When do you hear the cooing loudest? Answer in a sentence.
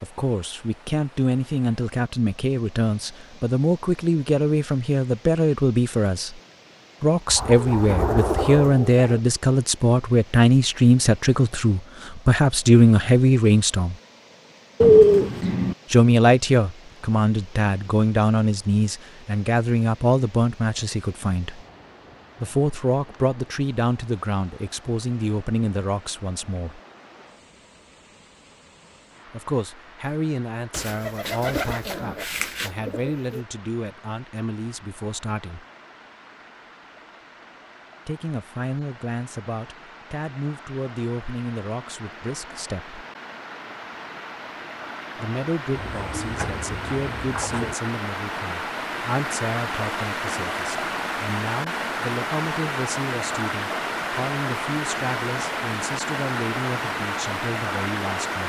The volume of the cooing peaks at 15 seconds.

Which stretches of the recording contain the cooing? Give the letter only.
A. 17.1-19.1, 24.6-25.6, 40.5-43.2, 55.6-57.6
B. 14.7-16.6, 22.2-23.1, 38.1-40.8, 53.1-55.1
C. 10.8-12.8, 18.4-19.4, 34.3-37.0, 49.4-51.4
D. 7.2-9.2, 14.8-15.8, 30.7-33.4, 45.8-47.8
D.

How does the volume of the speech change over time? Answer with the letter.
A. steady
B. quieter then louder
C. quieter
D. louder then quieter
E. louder
C.